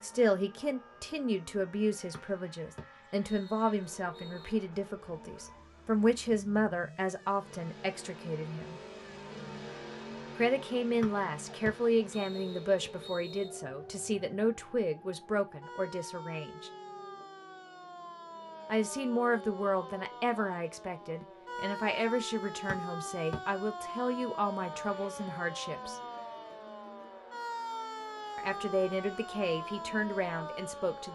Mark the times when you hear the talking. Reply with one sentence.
You can hear the talking from 0.0 to 8.8 s, from 10.3 to 16.7 s, from 18.6 to 26.0 s and from 28.4 to 31.1 s.